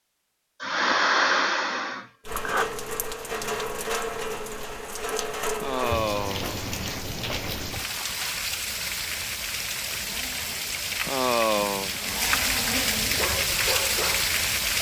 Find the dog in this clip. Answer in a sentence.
You can hear the dog from 13.2 to 14.7 s.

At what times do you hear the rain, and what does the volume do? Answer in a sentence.
You can hear the rain from 2.2 to 14.7 s, getting louder.